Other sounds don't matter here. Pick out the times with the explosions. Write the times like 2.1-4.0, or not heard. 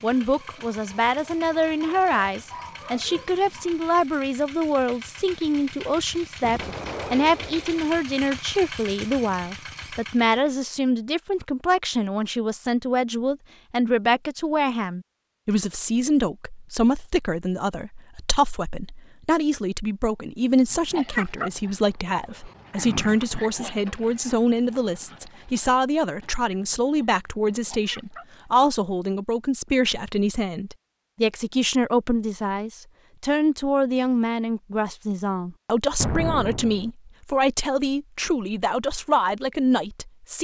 6.4-7.8, 36.0-36.9.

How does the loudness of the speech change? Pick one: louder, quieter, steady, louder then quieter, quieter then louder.
steady.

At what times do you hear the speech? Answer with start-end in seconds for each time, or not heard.
0.0-40.3.